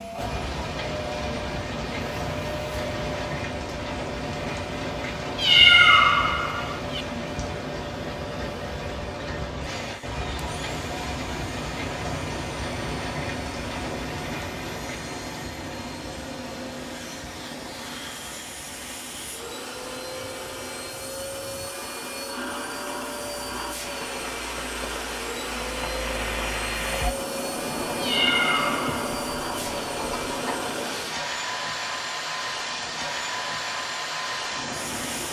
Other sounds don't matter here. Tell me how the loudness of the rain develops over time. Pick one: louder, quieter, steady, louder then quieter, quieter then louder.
quieter then louder.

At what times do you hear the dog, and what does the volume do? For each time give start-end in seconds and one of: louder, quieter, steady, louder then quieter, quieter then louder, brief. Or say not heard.
not heard.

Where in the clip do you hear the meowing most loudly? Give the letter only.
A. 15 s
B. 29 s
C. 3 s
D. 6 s
D.